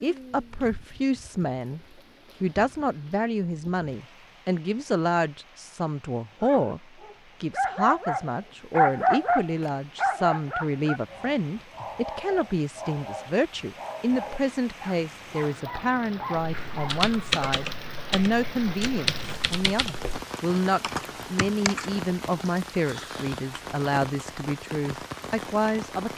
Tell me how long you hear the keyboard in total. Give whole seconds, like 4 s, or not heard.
6 s.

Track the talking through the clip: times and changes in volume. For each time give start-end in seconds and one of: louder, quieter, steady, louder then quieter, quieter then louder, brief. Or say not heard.
0.0-1.8 brief
2.4-26.1 steady.